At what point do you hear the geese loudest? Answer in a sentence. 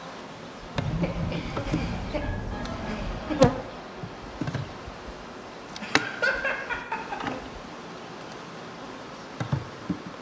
The loudest moment of the geese is at 1 second.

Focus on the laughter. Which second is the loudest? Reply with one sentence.
The volume of the laughter peaks at 6 seconds.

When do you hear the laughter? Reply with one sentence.
You can hear the laughter from 1.0 to 3.4 s and from 5.8 to 7.3 s.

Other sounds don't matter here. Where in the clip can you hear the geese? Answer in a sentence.
You can hear the geese from 0.8 to 3.6 s.